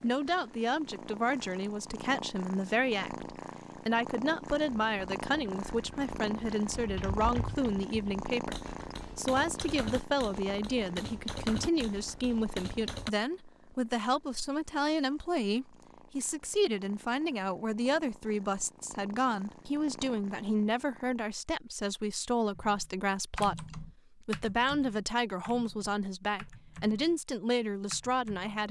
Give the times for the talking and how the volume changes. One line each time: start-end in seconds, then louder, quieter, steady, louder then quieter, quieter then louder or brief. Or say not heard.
0.0-28.6 steady.